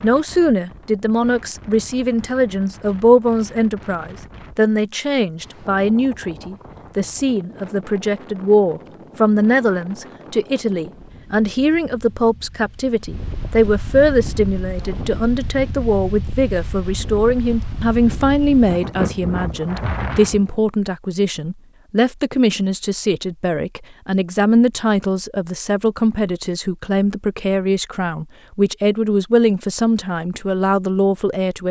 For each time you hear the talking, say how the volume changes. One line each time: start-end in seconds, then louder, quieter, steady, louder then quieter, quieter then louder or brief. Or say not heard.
0.0-31.6 steady.